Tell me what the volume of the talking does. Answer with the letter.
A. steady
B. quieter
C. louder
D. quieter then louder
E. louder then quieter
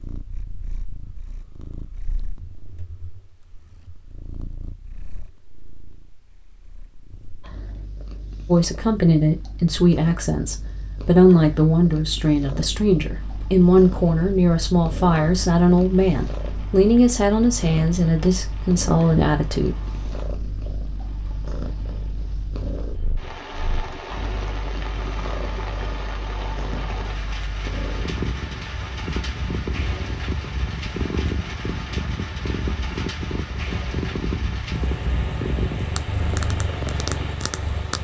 A.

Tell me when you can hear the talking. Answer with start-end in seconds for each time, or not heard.
8.4-19.8.